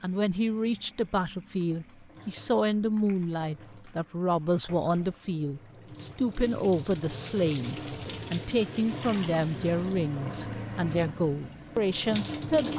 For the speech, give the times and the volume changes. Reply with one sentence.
The speech can be heard from 0.0 to 12.7 s, at a steady volume.